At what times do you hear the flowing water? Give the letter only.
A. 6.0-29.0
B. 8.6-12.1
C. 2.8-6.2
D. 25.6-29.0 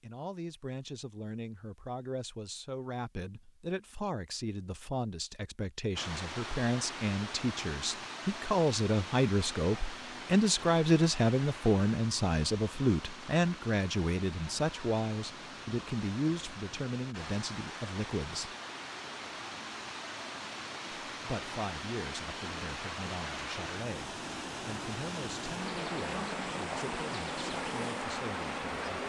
A.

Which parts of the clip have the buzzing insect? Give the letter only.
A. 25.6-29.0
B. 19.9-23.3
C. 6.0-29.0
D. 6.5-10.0
A.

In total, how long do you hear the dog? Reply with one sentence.
You can't hear the dog here.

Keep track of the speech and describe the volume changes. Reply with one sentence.
The loudness of the speech goes up, then down.